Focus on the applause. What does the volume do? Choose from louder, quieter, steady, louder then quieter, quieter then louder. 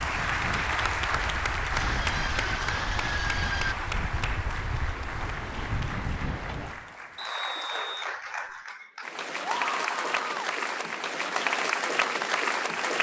quieter then louder.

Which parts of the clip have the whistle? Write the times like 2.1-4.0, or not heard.
7.2-8.6.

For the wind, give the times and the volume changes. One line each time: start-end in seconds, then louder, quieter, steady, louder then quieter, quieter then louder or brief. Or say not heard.
0.0-6.8 louder.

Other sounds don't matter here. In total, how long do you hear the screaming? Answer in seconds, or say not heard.
3 s.